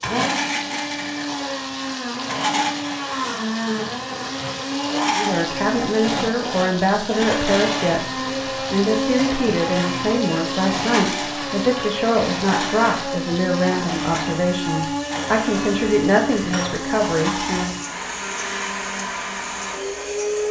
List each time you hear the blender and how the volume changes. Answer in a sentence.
The blender can be heard from 0.0 to 20.4 s, at a steady volume.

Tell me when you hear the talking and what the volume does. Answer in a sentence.
The talking can be heard from 5.2 to 17.8 s, at a steady volume.